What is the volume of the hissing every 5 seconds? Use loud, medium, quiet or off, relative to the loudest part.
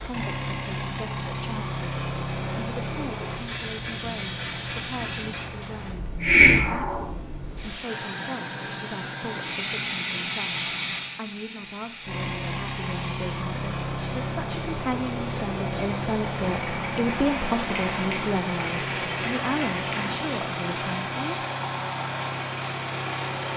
medium, loud, medium, medium, quiet.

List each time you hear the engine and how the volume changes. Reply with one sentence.
The engine can be heard from 0.0 to 6.0 s, getting quieter; and from 12.0 to 23.5 s, at a steady volume.